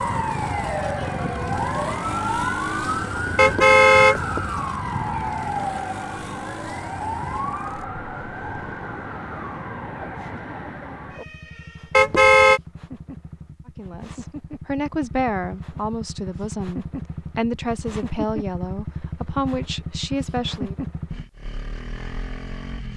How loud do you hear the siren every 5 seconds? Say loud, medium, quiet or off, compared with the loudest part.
loud, loud, medium, off, off.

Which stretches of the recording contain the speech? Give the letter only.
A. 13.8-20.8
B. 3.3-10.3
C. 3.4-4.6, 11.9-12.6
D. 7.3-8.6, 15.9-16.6
A.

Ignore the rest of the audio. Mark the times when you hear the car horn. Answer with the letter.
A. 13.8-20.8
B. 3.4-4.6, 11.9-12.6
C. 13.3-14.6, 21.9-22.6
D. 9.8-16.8
B.